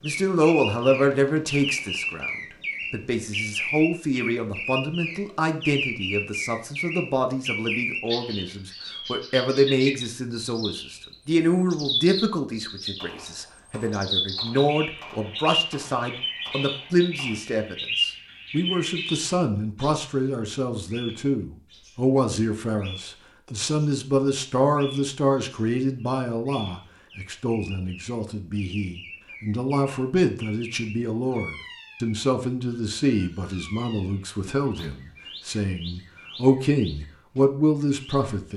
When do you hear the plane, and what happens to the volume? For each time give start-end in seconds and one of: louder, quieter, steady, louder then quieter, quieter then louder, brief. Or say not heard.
not heard.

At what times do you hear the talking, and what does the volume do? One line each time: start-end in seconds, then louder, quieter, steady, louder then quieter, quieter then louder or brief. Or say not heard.
0.0-2.3 brief
2.9-38.5 steady.